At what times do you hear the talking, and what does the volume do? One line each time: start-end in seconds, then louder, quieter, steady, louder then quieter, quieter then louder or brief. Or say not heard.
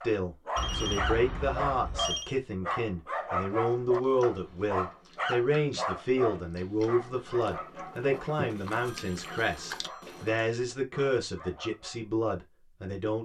0.0-13.2 steady.